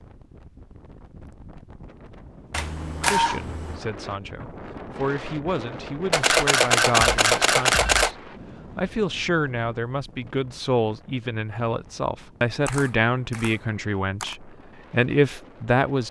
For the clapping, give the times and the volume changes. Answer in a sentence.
You can't hear the clapping here.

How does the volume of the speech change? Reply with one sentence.
The volume of the speech goes up.